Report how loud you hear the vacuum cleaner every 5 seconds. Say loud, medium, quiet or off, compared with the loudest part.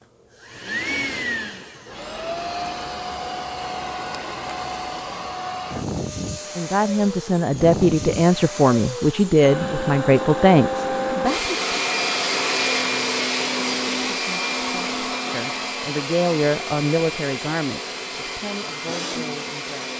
medium, medium, loud, medium.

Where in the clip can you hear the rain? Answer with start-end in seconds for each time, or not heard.
not heard.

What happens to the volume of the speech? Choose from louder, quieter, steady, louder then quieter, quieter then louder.
quieter.